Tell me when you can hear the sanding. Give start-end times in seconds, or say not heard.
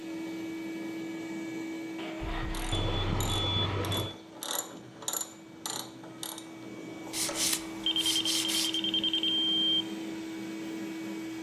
1.9-4.0, 7.1-8.8.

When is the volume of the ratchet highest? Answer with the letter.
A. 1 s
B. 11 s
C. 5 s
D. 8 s
C.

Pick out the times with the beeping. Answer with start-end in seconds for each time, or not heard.
2.7-4.2, 7.8-9.8.